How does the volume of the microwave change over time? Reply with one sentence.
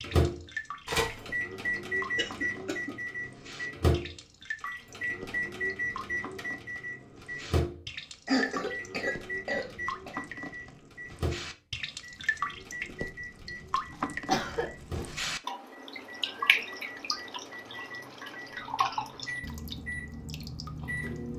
The volume of the microwave goes down.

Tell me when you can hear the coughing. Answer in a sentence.
You can hear the coughing from 2.1 to 3.0 s, from 8.2 to 10.2 s and from 14.2 to 15.1 s.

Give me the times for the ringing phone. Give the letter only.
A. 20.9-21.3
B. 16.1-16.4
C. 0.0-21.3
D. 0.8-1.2
D.